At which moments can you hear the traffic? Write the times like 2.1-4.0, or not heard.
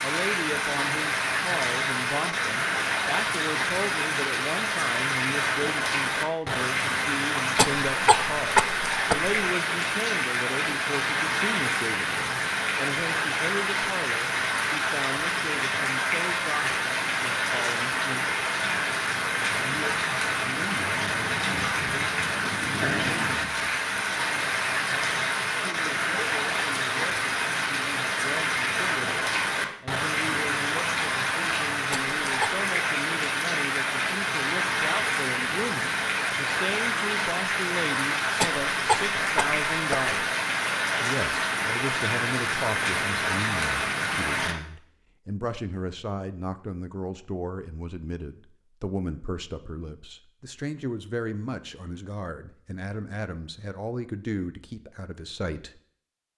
not heard.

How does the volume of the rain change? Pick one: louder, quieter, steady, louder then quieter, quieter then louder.
steady.